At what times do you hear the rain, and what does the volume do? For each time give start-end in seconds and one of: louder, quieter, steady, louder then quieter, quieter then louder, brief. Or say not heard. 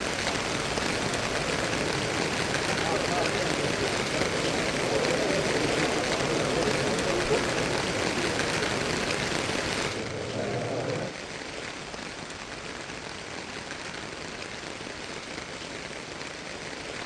0.0-17.0 quieter.